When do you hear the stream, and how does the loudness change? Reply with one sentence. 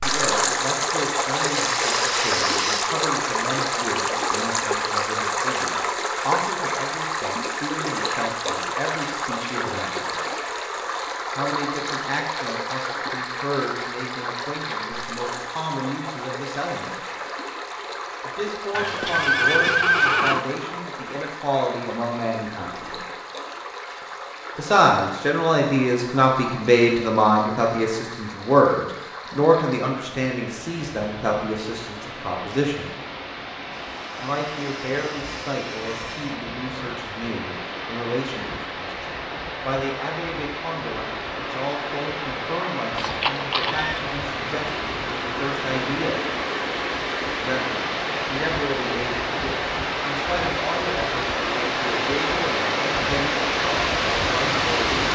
The stream can be heard from 0.0 to 55.1 s, getting quieter then louder.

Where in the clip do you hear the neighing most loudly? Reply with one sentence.
The loudest moment of the neighing is at 20 seconds.